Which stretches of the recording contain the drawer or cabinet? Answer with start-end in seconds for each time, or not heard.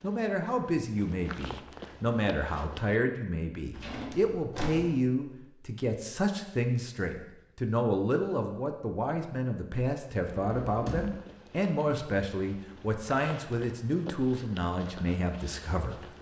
3.7-5.0, 10.2-11.2.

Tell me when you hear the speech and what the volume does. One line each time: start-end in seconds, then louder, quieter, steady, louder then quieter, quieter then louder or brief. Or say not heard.
0.0-16.1 steady.